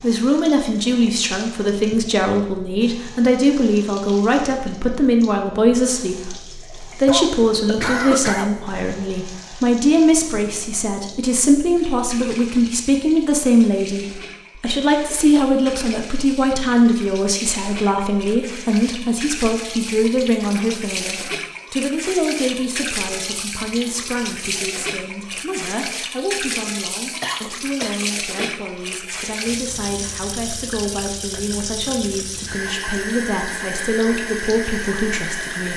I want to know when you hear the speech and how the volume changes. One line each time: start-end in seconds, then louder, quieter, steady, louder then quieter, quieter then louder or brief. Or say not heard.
0.0-35.7 quieter.